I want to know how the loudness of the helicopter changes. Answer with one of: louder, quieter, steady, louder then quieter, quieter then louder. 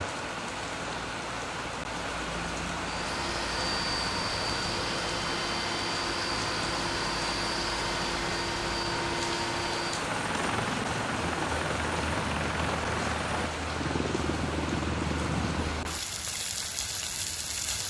steady.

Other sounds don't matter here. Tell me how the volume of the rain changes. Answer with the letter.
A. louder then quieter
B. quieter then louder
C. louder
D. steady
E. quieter
D.